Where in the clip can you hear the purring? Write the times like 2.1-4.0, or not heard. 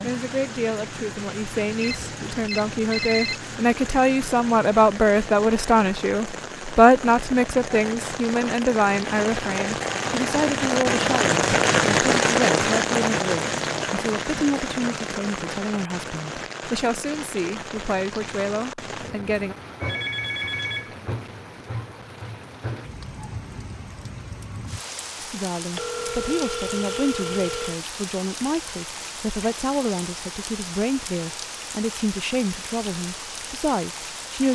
not heard.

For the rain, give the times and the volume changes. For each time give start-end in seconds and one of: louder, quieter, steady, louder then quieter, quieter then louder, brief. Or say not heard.
0.0-34.5 louder then quieter.